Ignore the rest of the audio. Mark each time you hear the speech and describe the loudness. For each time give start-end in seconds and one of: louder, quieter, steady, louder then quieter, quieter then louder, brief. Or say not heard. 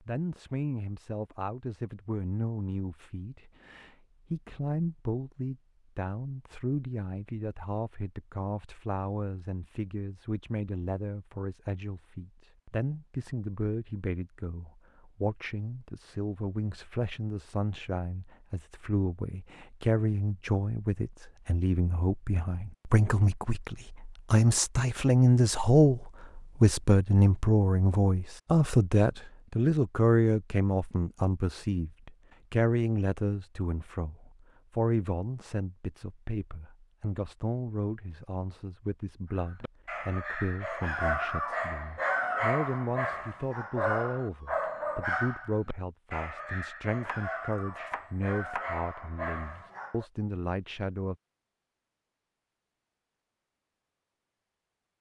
0.0-51.1 louder then quieter.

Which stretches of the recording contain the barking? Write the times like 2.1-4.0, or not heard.
39.6-50.0.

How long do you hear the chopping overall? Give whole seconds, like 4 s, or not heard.
2 s.